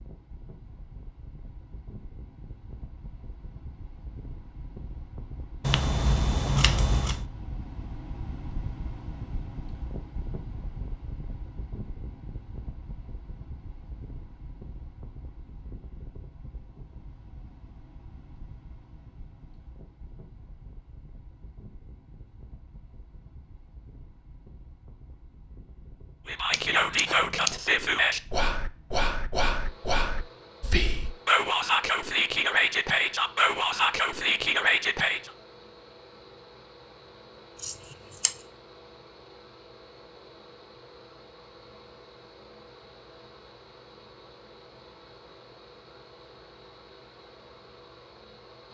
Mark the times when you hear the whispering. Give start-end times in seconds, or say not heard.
26.2-35.3.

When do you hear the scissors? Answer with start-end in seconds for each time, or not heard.
5.6-7.2, 26.5-27.6, 37.5-38.4.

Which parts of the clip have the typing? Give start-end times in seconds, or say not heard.
not heard.